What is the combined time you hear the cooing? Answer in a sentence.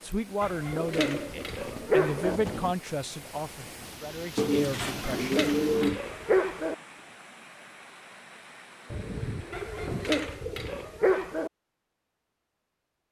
The cooing can be heard for 6 seconds in total.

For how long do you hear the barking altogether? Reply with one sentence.
The barking can be heard for 6 seconds in total.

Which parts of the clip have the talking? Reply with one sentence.
You can hear the talking from 0.0 to 5.5 s.